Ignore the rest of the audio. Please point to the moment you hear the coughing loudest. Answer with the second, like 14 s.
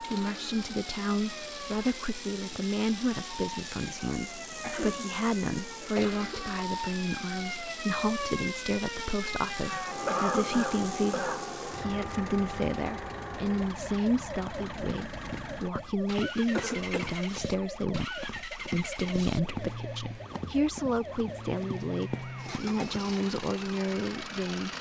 10 s.